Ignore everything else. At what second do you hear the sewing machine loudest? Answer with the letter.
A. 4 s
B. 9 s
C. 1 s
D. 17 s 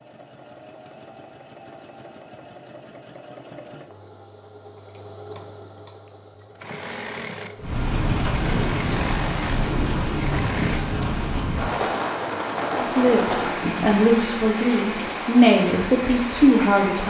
B.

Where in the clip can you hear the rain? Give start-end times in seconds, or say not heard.
7.5-17.0.